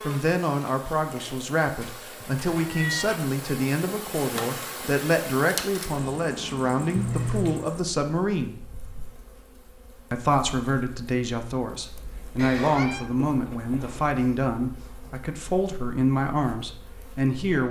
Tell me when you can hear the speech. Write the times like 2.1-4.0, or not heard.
0.0-8.6, 10.1-17.6.